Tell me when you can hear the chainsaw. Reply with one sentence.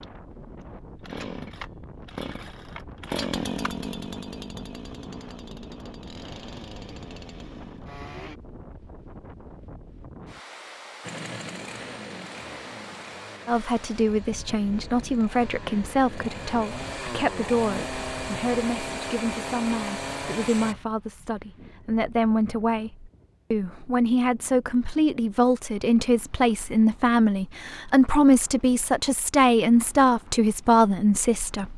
The chainsaw can be heard from 0.0 to 8.4 s and from 11.1 to 20.8 s.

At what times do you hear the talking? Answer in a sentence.
The talking can be heard from 13.4 to 31.7 s.